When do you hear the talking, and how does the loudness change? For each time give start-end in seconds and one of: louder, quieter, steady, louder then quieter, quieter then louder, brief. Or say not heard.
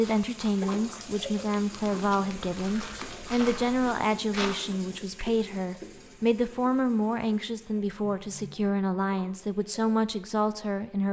0.0-11.0 steady.